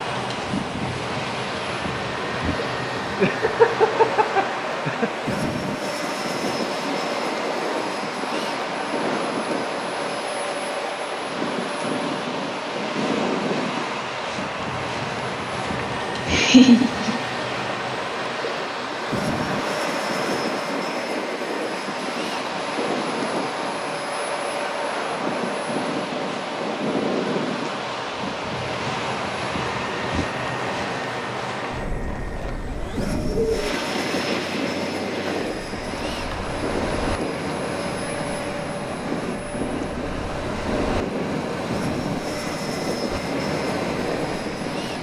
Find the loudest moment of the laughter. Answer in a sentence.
The volume of the laughter peaks at 17 seconds.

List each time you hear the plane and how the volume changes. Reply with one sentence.
The plane can be heard from 0.0 to 44.9 s, at a steady volume.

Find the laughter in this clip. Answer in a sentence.
The laughter can be heard from 3.1 to 5.1 s, from 16.2 to 17.2 s and from 33.2 to 33.7 s.